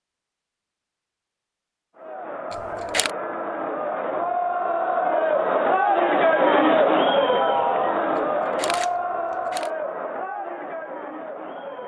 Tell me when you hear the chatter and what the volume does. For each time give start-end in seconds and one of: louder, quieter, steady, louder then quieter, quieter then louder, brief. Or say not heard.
1.9-11.8 louder then quieter.